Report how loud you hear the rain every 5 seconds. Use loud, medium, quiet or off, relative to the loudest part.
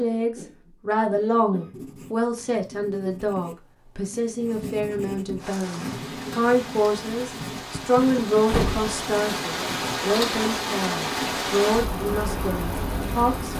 off, medium, loud.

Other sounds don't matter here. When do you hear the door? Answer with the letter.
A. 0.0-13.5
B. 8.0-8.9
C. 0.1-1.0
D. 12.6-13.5
B.